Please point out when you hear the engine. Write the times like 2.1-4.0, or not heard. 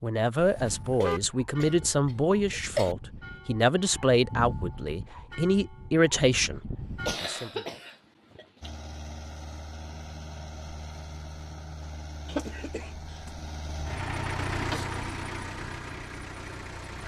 8.6-17.0.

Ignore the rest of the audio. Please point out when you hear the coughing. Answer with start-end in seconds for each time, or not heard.
0.9-3.0, 7.0-8.7, 12.2-13.3.